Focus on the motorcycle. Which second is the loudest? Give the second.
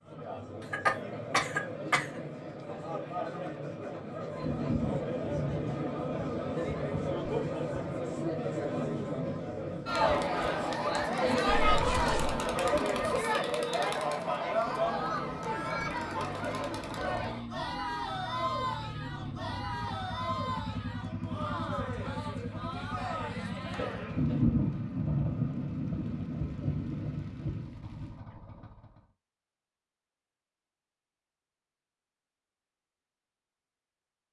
21 s.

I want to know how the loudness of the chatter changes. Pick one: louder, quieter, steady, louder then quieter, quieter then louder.
louder then quieter.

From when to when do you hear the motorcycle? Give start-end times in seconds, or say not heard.
14.7-29.1.